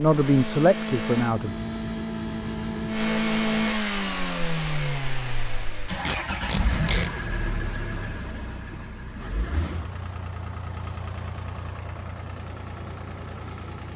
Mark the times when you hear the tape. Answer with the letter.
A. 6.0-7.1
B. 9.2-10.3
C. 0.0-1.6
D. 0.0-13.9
A.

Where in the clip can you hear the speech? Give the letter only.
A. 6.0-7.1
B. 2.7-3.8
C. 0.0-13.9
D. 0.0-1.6
D.